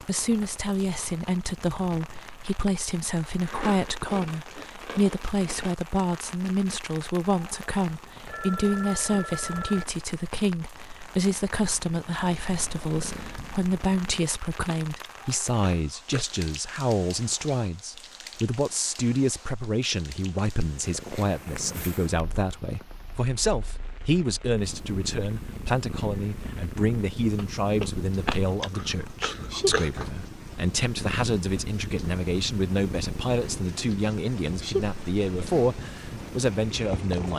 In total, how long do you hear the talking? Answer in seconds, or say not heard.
37 s.